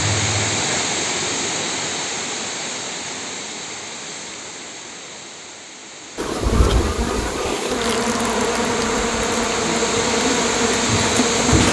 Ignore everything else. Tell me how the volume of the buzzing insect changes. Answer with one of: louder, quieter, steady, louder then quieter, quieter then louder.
steady.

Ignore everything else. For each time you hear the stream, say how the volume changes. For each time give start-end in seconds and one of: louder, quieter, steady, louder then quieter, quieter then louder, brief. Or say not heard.
0.0-11.6 quieter then louder.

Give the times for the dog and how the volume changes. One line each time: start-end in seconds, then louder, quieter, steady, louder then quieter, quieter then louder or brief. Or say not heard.
not heard.